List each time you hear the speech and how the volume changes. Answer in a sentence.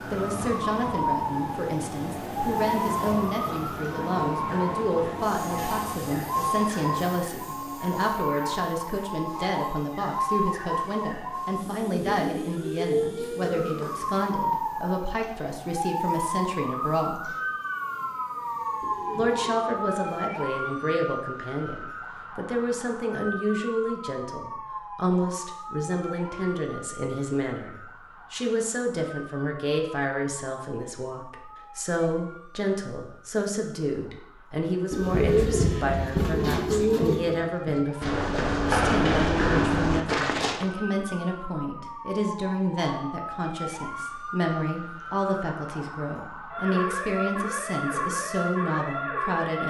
You can hear the speech from 0.1 to 17.4 s, at a steady volume; and from 19.1 to 49.6 s, at a steady volume.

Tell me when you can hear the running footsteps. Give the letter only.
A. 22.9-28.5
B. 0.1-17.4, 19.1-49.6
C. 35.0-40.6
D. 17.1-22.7
C.